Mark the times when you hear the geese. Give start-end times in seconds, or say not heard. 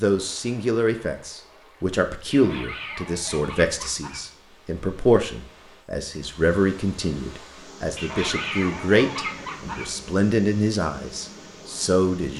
2.3-4.3, 8.0-9.9.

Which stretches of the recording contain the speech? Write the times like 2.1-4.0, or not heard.
0.0-12.3.